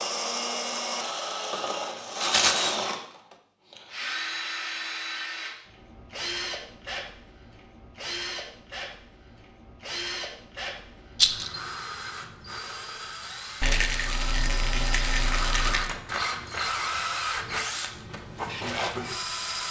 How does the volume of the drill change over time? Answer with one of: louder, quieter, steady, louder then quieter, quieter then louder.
quieter then louder.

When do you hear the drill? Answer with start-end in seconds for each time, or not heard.
0.0-19.6.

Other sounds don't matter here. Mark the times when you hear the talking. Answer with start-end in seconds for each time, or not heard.
not heard.